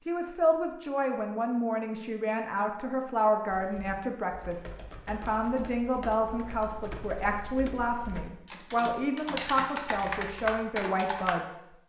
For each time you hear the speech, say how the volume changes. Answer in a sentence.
You can hear the speech from 0.1 to 11.7 s, at a steady volume.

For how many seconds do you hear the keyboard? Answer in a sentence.
The keyboard can be heard for 8 seconds in total.